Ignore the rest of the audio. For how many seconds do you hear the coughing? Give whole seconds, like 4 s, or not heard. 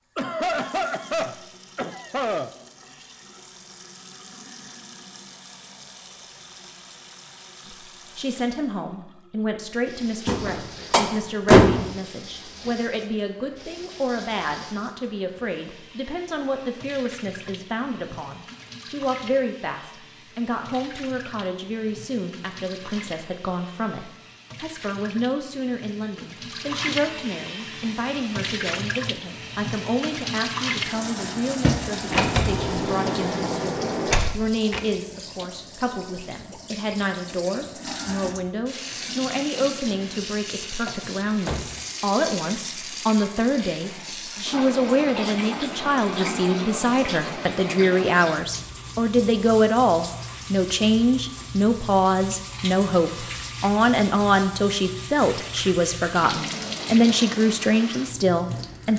2 s.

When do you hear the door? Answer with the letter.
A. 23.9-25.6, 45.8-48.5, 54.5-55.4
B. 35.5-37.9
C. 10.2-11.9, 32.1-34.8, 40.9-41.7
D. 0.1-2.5
C.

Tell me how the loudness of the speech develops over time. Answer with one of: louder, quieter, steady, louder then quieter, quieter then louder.
louder.